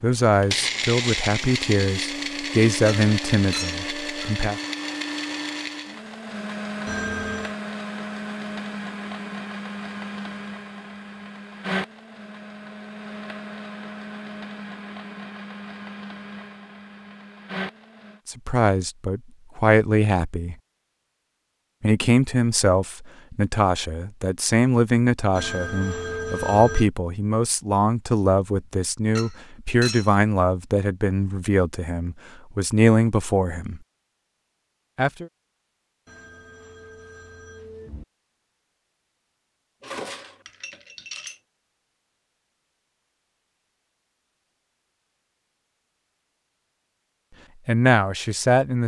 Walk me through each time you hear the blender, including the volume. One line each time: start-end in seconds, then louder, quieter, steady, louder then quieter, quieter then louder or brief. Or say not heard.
0.2-18.2 quieter.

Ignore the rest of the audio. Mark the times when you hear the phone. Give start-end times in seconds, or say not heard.
6.8-7.5, 25.4-26.9, 36.0-38.0.